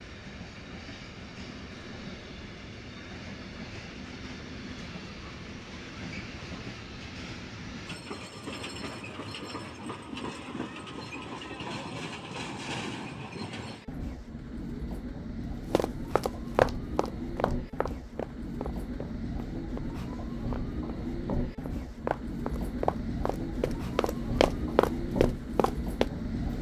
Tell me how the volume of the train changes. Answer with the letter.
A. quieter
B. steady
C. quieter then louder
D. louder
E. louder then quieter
D.